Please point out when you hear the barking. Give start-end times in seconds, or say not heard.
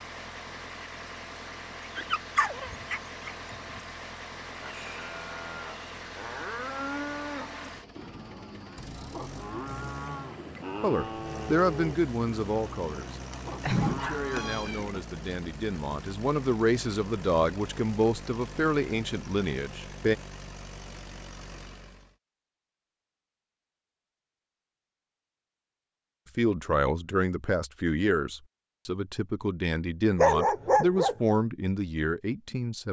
1.9-3.8, 13.3-14.6, 30.1-31.1.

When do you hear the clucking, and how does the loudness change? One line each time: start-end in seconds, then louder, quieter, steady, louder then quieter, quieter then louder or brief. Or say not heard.
not heard.